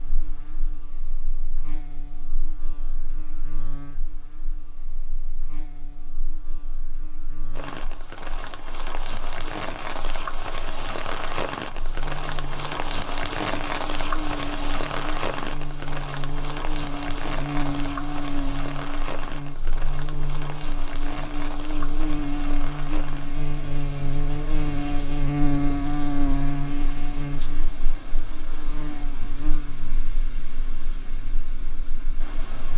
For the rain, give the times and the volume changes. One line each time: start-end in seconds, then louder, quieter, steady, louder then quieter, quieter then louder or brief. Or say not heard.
7.5-32.7 quieter.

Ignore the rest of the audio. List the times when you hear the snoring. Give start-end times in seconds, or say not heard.
not heard.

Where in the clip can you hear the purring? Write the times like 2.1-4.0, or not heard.
not heard.